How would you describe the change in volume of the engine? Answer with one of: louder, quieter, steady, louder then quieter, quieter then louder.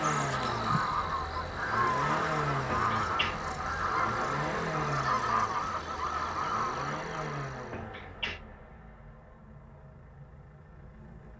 quieter.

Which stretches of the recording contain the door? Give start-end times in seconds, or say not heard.
2.7-3.4, 7.7-8.4.